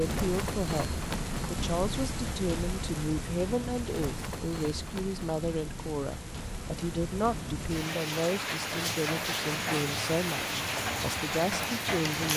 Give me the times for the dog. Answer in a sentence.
You can't hear the dog here.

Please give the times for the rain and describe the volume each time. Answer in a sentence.
You can hear the rain from 0.0 to 12.3 s, getting quieter then louder.